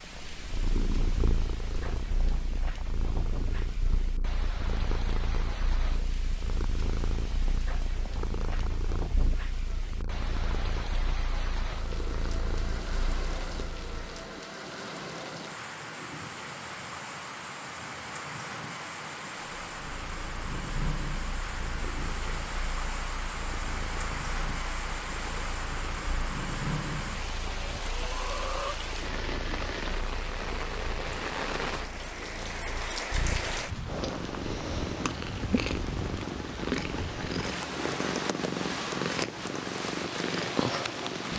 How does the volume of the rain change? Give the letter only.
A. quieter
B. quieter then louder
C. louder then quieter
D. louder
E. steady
D.